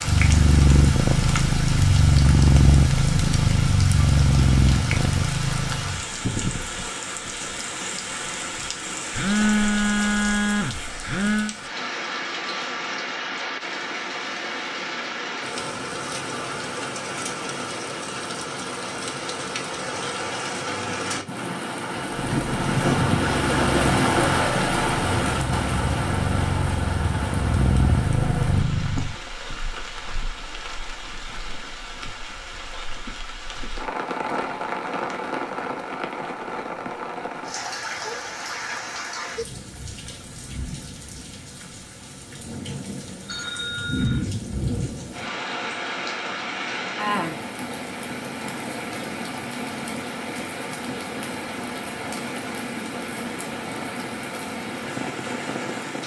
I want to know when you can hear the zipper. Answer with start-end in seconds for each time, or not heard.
not heard.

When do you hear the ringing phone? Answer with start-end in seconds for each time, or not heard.
9.1-11.6, 43.2-44.3.